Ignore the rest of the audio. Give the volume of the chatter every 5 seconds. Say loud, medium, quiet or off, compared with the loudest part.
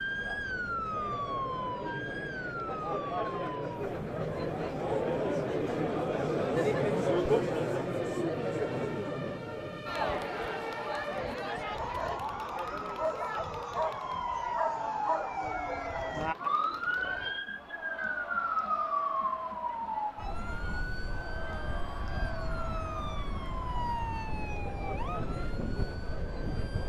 medium, loud, medium, quiet, quiet, quiet.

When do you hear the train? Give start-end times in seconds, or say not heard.
not heard.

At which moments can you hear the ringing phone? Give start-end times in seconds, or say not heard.
not heard.